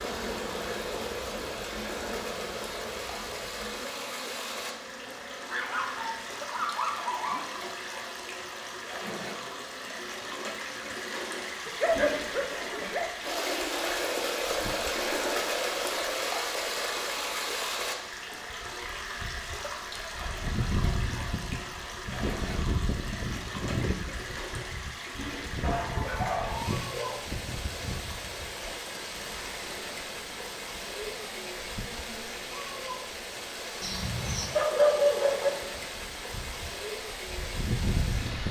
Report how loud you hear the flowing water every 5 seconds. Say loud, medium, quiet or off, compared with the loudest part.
medium, medium, loud, loud, medium, medium, medium, medium.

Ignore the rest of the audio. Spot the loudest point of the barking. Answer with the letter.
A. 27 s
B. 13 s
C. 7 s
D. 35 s
D.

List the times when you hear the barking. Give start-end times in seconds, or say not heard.
5.5-7.5, 11.7-13.0, 25.6-27.2, 33.8-35.5.